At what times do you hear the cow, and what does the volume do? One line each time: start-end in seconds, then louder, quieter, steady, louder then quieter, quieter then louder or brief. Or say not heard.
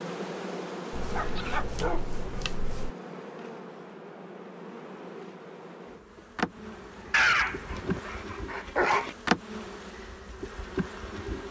not heard.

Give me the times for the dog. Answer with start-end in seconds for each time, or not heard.
0.9-2.9, 7.1-9.2.